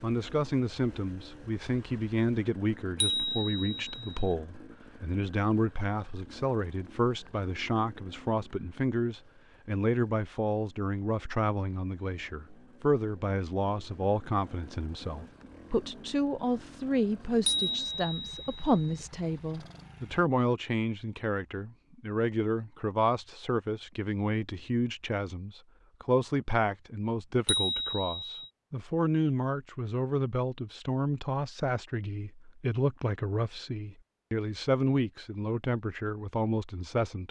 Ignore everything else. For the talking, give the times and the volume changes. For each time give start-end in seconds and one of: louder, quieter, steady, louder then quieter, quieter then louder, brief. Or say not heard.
0.0-37.2 steady.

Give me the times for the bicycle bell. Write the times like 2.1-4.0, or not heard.
3.0-4.3, 17.4-19.0, 27.4-28.5.